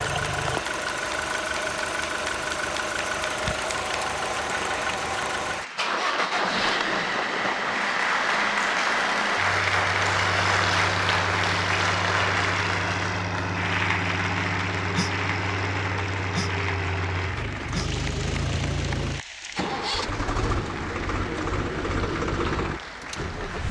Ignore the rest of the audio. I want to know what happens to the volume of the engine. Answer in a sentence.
The loudness of the engine stays about the same.